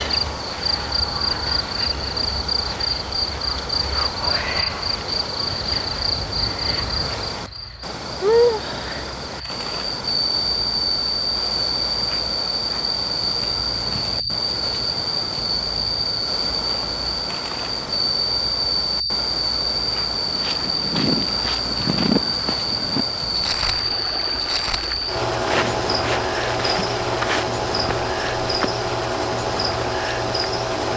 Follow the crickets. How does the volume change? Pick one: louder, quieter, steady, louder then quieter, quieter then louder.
steady.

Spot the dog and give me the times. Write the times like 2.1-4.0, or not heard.
not heard.